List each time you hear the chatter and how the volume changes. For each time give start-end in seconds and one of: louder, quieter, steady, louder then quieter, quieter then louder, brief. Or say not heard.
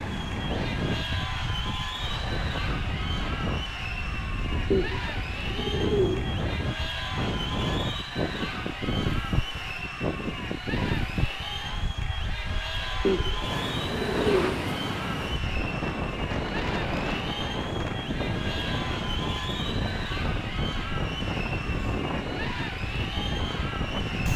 0.0-24.3 steady.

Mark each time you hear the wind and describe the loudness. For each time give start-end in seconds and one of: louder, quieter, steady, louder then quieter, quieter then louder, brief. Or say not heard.
0.0-24.3 steady.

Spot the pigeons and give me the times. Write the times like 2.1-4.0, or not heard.
4.7-6.3, 13.1-14.7.